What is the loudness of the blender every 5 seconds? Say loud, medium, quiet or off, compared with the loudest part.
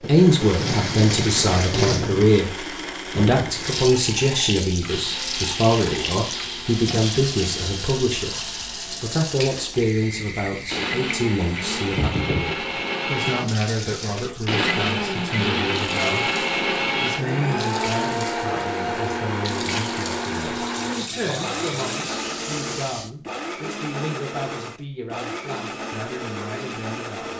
medium, medium, loud, loud, medium, medium.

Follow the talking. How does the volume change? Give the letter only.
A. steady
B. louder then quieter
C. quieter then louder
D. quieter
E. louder
D.